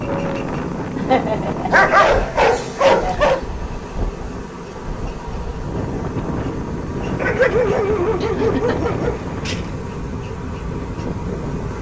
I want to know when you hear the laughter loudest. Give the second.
1 s.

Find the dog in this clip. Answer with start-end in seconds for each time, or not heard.
1.7-3.4, 7.2-9.7.